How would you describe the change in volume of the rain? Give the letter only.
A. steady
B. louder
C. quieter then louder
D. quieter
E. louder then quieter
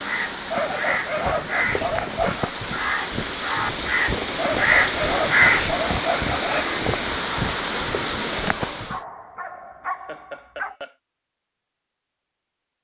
B.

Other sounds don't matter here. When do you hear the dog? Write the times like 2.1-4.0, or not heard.
0.5-2.5, 4.3-6.7, 8.7-10.8.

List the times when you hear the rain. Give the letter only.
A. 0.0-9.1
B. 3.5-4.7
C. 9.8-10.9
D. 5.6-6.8
A.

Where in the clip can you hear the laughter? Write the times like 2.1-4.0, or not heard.
9.8-10.9.